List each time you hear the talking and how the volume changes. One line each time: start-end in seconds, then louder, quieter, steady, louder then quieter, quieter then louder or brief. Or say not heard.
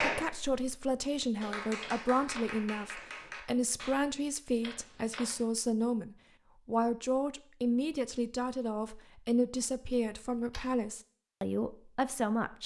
0.0-12.6 steady.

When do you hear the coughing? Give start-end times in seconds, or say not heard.
not heard.